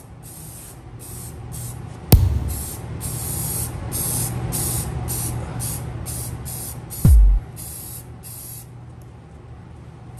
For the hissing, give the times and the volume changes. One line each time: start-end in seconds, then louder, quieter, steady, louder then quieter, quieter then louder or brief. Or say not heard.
0.0-10.1 louder then quieter.